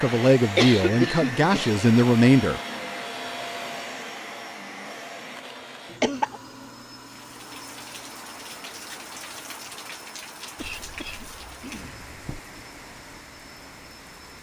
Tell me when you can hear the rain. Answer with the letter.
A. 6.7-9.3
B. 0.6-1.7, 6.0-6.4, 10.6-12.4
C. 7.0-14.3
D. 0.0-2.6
C.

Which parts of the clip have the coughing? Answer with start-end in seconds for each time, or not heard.
0.6-1.7, 6.0-6.4, 10.6-12.4.